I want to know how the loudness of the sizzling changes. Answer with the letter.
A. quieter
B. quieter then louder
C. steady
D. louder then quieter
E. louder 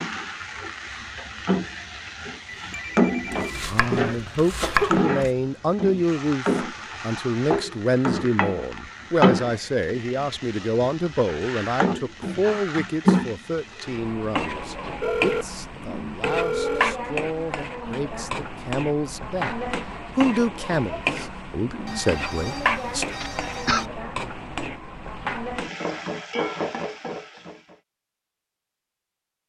C.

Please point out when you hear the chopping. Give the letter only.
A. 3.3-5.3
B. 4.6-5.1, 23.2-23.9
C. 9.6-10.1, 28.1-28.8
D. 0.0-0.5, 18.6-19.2
A.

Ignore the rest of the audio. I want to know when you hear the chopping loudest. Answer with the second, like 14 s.
5 s.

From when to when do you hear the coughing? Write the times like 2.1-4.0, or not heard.
4.6-5.1, 23.2-23.9.